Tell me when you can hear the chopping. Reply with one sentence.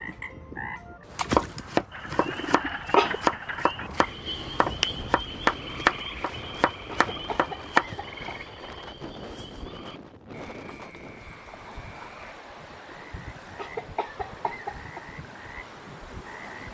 The chopping can be heard from 1.1 to 7.8 s.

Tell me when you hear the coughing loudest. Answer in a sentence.
The loudest moment of the coughing is at 3 seconds.